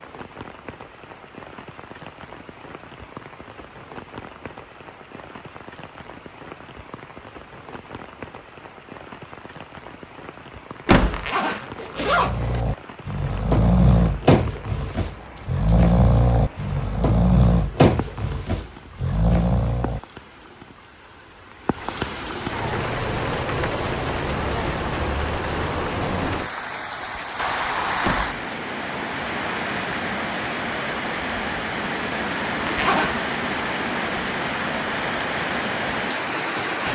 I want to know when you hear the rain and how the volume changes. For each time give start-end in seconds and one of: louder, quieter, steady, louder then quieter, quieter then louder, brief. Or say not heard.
0.0-36.9 louder.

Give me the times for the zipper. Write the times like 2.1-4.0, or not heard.
11.1-12.6, 32.6-33.2.